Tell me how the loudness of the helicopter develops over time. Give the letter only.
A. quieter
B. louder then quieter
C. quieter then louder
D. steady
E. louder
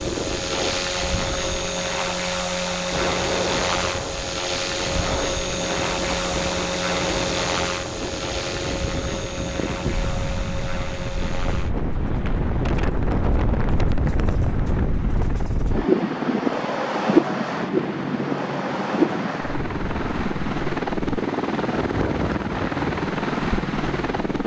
C.